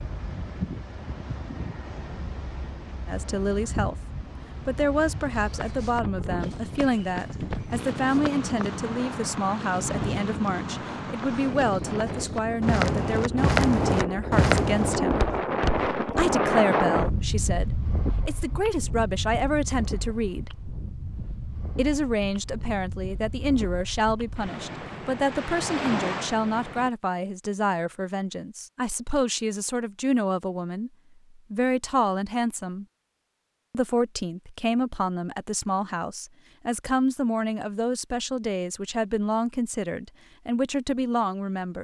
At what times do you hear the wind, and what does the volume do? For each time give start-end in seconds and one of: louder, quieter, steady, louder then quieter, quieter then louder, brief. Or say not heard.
0.0-26.9 louder then quieter.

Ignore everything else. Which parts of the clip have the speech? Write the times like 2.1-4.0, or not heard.
3.0-4.0, 4.7-15.2, 16.1-20.5, 21.8-32.9, 33.7-41.7.